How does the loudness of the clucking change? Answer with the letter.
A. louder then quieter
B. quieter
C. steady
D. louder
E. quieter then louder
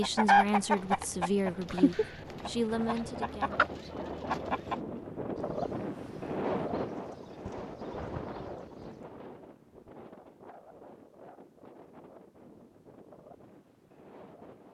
E.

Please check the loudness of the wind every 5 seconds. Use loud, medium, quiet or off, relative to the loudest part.
medium, loud, quiet.